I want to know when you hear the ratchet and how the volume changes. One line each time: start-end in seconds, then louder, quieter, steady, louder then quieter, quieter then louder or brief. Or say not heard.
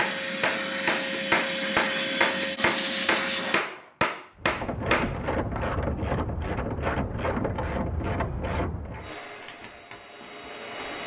4.4-9.1 steady.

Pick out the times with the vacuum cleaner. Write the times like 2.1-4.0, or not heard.
0.0-3.6, 9.0-11.0.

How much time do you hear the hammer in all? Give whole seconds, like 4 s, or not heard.
6 s.